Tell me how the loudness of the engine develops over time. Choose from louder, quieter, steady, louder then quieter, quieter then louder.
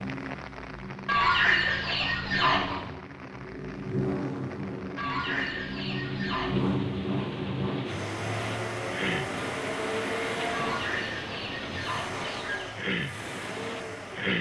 louder then quieter.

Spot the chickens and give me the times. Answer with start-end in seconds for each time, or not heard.
1.1-2.8, 5.0-6.7, 10.5-12.8.